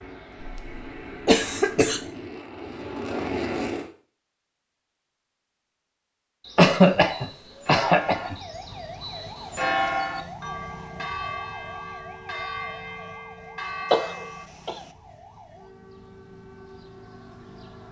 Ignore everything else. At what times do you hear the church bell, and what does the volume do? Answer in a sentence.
The church bell can be heard from 6.4 to 14.4 s, getting louder then quieter.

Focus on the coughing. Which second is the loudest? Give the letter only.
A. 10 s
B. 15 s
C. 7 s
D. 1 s
C.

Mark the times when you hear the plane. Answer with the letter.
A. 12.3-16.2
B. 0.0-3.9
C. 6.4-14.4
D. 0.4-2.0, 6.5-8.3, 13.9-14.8
B.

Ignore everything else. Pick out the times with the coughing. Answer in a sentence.
You can hear the coughing from 0.4 to 2.0 s, from 6.5 to 8.3 s and from 13.9 to 14.8 s.